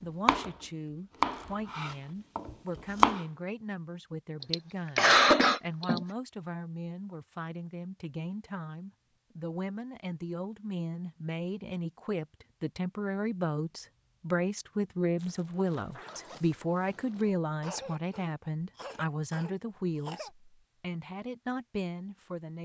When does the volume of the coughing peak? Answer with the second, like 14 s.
5 s.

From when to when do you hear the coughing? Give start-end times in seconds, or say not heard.
4.4-6.0, 17.6-20.3.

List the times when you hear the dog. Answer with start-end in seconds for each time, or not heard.
not heard.